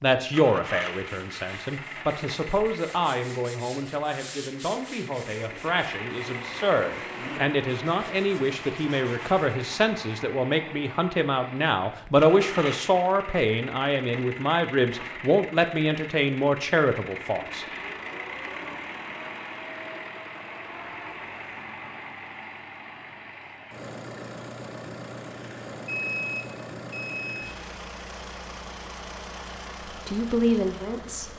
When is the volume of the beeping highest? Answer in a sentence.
The loudest moment of the beeping is at 26 seconds.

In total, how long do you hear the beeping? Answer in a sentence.
You can hear the beeping for 2 seconds altogether.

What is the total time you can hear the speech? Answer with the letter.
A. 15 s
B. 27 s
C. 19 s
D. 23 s
C.